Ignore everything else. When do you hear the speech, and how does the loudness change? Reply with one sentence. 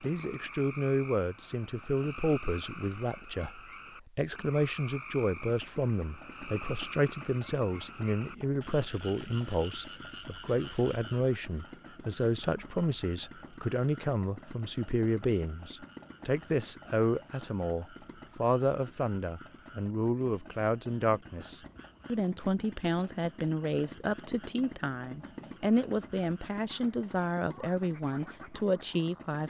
The speech can be heard from 0.0 to 29.4 s, at a steady volume.